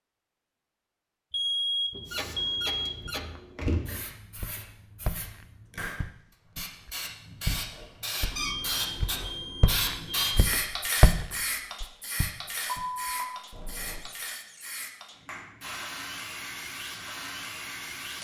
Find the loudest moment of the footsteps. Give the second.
11 s.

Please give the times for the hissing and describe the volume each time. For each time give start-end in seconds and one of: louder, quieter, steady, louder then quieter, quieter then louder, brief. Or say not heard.
2.0-18.1 louder then quieter.